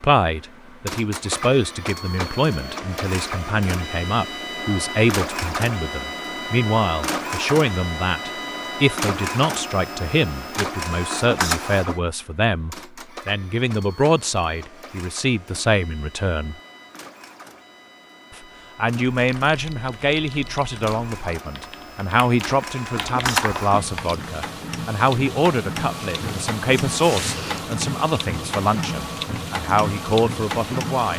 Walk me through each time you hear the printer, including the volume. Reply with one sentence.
You can hear the printer from 0.0 to 31.1 s, getting quieter then louder.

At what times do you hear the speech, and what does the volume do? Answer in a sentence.
You can hear the speech from 0.0 to 16.6 s, at a steady volume; and from 18.4 to 31.1 s, at a steady volume.